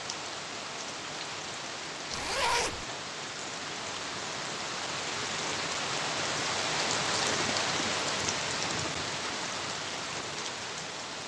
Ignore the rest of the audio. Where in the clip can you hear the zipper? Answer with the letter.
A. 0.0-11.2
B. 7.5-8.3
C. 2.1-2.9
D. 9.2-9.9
C.